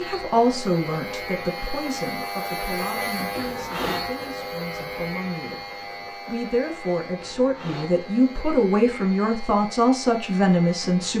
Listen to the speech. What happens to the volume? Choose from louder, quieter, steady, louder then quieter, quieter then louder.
quieter then louder.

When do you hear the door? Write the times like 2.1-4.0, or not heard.
not heard.